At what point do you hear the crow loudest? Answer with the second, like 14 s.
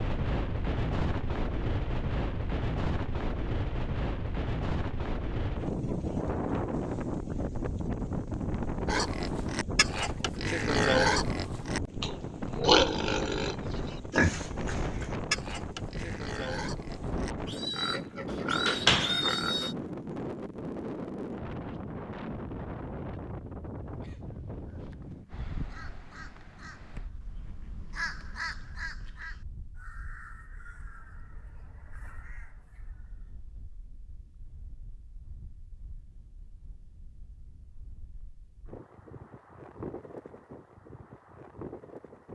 28 s.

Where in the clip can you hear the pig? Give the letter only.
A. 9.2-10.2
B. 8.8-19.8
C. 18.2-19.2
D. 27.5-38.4
B.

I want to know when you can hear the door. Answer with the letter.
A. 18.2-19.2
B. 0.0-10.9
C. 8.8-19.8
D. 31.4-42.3
A.